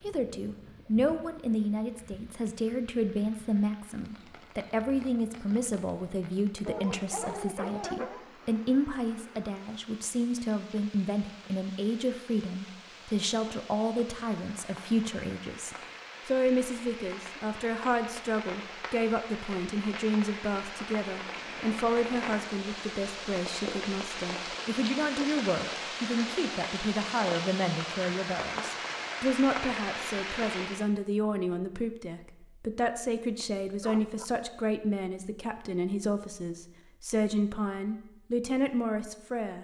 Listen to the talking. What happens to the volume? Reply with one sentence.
The loudness of the talking stays about the same.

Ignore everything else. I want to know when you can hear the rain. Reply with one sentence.
The rain can be heard from 0.0 to 30.9 s.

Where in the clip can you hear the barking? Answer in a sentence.
You can hear the barking from 6.7 to 8.2 s and from 33.8 to 34.2 s.